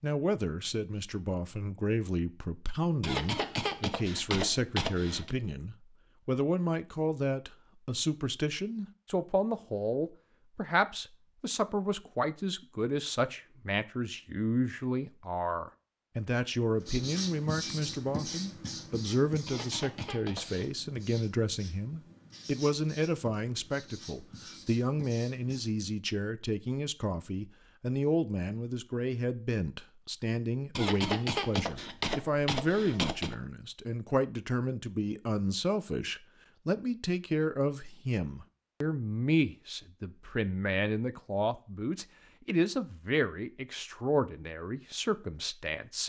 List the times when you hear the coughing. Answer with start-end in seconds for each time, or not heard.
3.0-5.3, 19.4-20.6, 30.8-33.4.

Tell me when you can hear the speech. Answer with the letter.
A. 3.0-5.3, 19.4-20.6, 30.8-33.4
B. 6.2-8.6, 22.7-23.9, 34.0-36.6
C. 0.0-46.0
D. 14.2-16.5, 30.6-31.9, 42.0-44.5
C.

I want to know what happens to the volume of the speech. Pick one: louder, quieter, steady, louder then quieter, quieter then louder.
steady.